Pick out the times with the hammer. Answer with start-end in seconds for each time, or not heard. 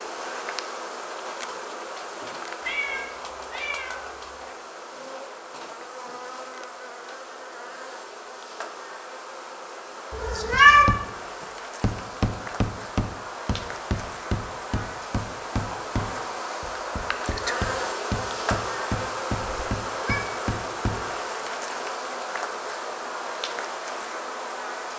10.5-21.4.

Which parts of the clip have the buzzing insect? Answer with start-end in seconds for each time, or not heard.
0.0-24.9.